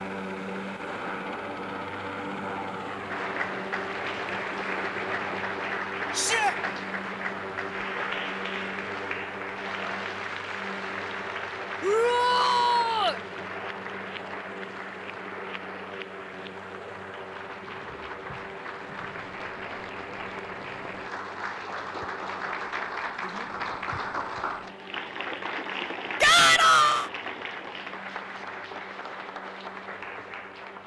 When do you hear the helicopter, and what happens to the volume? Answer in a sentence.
The helicopter can be heard from 0.0 to 30.8 s, getting quieter.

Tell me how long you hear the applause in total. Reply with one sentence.
You can hear the applause for 28 seconds altogether.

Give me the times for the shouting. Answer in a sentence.
You can hear the shouting from 6.1 to 6.5 s, from 11.8 to 13.2 s and from 26.2 to 27.1 s.